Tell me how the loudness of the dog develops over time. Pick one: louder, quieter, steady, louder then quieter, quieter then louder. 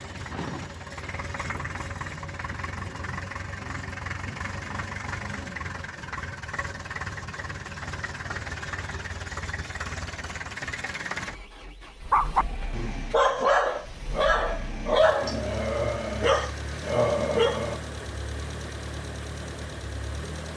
steady.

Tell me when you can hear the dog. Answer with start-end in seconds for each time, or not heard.
12.1-17.8.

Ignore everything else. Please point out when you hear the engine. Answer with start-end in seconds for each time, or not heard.
0.0-20.5.